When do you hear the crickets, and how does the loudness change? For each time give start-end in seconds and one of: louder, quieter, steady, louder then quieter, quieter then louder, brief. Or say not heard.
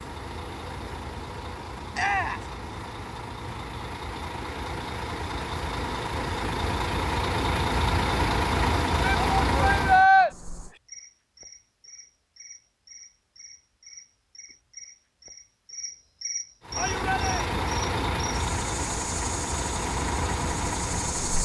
10.3-21.3 louder.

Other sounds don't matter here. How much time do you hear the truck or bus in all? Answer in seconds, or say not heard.
15 s.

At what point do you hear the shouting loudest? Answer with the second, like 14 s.
10 s.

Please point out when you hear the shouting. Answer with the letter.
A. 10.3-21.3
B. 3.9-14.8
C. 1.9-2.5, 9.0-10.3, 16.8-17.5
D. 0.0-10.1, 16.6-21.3
C.